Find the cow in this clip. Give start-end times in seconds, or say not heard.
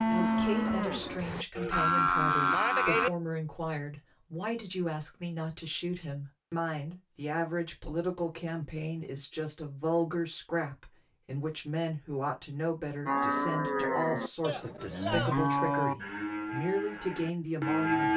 0.0-3.1, 13.1-18.1.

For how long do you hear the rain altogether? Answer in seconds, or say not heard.
not heard.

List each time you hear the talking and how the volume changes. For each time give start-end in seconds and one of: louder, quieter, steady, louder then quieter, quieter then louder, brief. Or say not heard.
0.0-18.1 steady.